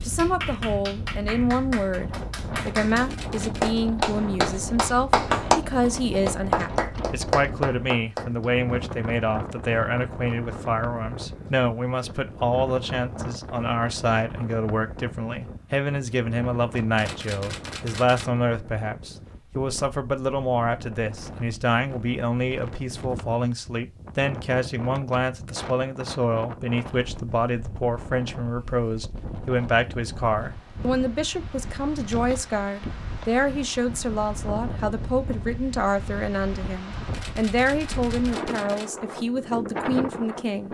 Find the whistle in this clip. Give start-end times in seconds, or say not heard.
not heard.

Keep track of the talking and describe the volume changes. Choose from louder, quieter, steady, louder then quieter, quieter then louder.
steady.